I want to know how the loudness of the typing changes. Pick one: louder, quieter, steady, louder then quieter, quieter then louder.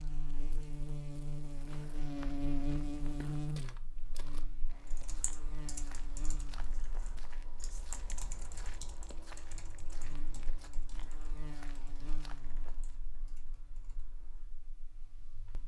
quieter.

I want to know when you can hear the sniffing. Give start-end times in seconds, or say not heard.
not heard.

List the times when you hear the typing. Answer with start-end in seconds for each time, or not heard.
4.8-14.6.